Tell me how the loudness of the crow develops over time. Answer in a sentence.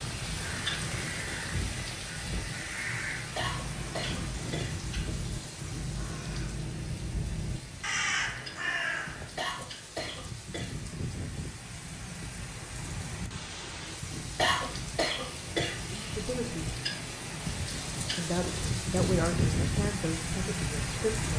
The volume of the crow goes up.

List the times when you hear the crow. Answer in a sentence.
The crow can be heard from 0.3 to 9.3 s.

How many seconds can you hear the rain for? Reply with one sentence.
You can hear the rain for 21 seconds altogether.